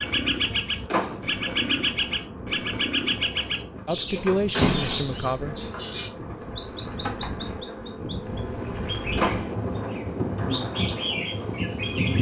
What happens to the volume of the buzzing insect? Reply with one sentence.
The loudness of the buzzing insect goes up.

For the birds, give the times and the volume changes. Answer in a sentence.
The birds can be heard from 0.0 to 12.1 s, getting quieter.